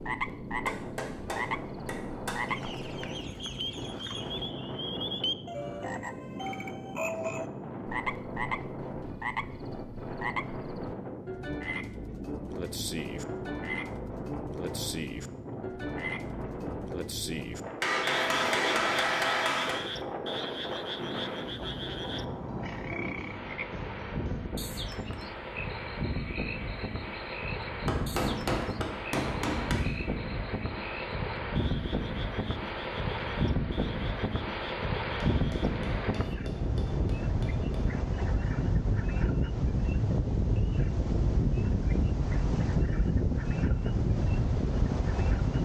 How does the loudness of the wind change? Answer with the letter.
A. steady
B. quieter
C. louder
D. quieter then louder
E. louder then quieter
C.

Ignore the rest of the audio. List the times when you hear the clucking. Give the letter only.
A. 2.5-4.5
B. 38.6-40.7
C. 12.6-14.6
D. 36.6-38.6
A.